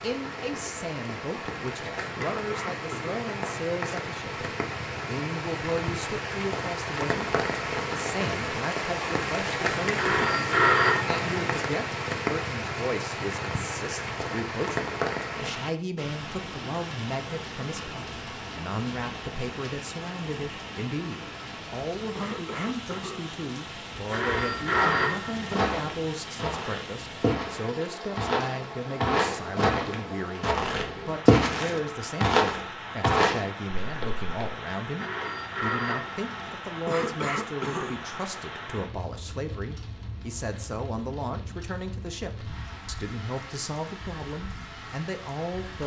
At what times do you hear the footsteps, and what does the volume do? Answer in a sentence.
The footsteps can be heard from 24.6 to 34.2 s, getting louder.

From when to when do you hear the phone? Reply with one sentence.
The phone can be heard from 9.9 to 11.5 s, from 24.1 to 25.6 s and from 35.0 to 36.5 s.